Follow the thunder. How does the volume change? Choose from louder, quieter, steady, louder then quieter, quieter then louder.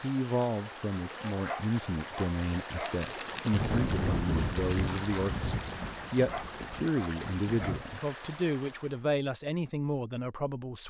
quieter.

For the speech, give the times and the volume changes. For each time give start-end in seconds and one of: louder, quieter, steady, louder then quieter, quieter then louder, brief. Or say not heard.
0.0-10.8 steady.